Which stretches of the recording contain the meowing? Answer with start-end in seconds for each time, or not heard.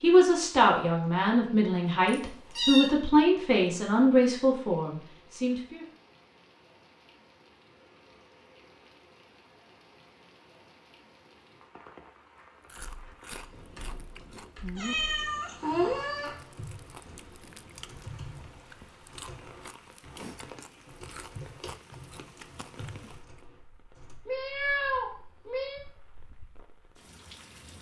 2.0-2.9, 14.8-16.4, 24.2-25.8.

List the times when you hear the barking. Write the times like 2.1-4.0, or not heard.
not heard.